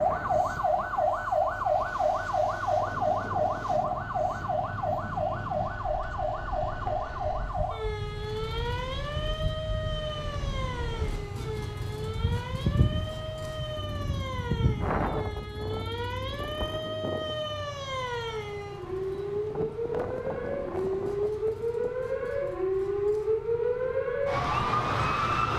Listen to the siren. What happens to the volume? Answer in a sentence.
The volume of the siren goes down, then up.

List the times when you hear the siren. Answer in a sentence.
The siren can be heard from 0.0 to 25.5 s.